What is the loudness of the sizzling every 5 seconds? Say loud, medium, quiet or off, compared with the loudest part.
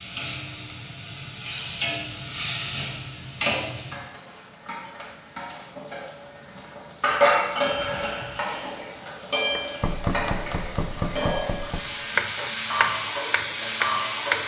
medium, loud, loud.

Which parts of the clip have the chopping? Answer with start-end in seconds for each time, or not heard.
9.5-14.4.